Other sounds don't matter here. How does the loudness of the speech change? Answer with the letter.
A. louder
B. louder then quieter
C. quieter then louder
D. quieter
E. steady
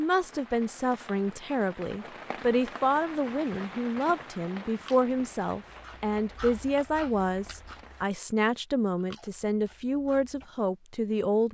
E.